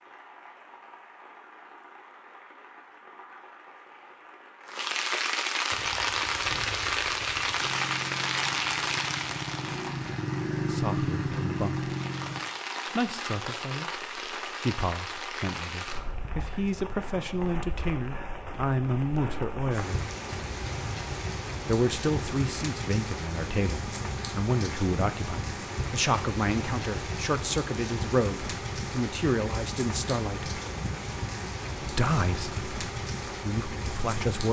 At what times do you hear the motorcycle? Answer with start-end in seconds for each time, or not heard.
5.7-12.4.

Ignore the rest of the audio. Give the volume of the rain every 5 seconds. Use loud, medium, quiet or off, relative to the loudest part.
quiet, loud, medium, medium, medium, medium, medium.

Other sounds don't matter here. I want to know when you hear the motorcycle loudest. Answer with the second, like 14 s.
11 s.